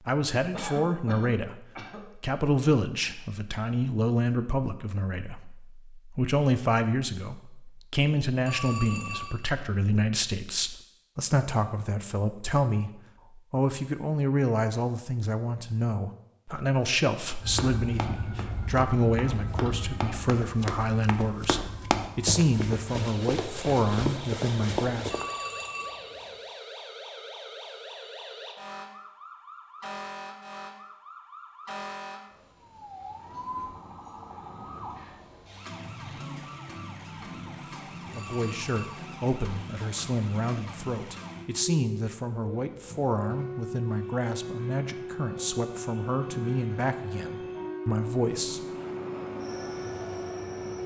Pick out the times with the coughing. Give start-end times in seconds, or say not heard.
0.5-2.0.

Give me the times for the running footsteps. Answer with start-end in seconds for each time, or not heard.
17.4-25.2.